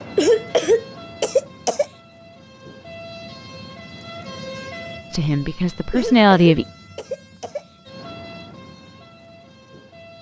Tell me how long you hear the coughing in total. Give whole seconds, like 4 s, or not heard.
4 s.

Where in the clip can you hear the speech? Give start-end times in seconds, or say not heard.
5.1-6.7.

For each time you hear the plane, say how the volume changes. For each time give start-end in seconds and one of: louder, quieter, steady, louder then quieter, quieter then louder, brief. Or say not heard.
not heard.